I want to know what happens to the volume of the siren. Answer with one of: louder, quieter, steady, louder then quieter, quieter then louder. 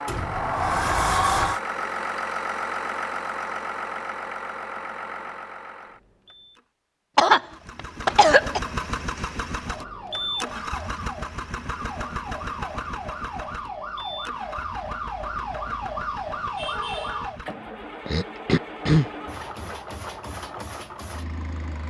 louder.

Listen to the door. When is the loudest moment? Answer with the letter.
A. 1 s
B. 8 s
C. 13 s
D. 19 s
A.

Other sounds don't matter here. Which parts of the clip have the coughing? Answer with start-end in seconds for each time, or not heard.
7.2-8.6, 18.1-19.1.